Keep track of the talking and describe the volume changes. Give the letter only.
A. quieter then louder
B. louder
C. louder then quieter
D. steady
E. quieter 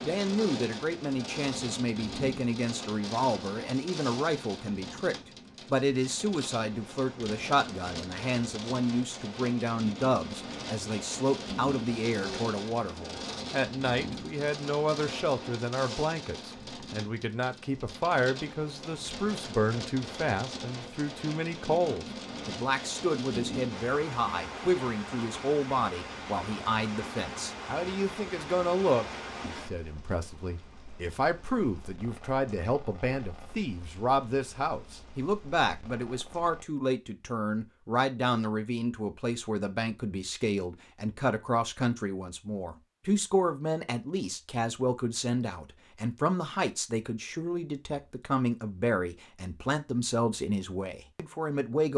D.